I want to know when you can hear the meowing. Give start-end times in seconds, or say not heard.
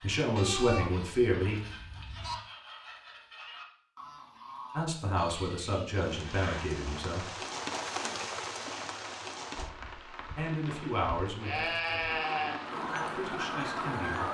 not heard.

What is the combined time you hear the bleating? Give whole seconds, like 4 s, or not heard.
5 s.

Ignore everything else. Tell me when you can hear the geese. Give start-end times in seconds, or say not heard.
0.0-5.0, 12.7-14.3.